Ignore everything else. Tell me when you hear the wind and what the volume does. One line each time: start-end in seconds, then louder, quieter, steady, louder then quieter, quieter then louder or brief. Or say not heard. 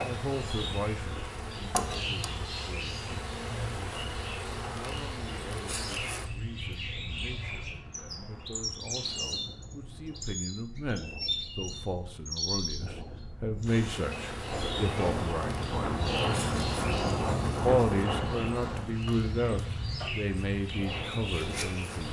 6.2-22.0 louder then quieter.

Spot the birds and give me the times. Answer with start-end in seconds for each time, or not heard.
0.0-22.0.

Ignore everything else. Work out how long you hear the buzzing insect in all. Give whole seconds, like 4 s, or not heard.
15 s.